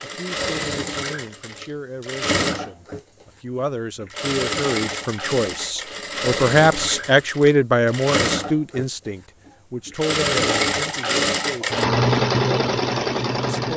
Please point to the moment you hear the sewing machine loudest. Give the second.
12 s.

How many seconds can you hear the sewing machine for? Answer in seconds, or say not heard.
14 s.